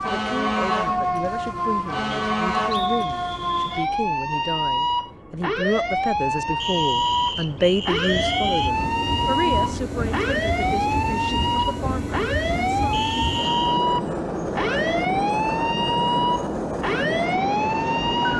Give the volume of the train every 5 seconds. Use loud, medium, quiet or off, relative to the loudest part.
quiet, medium, loud, loud.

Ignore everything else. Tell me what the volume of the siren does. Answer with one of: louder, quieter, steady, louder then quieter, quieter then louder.
steady.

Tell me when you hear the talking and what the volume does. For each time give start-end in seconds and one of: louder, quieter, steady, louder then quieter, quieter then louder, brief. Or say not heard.
0.0-12.9 louder then quieter.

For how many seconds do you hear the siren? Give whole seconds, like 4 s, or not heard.
18 s.